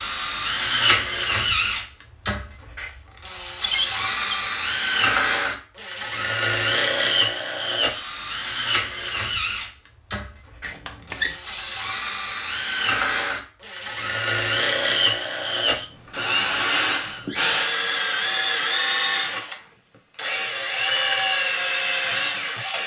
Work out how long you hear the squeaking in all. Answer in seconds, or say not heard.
3 s.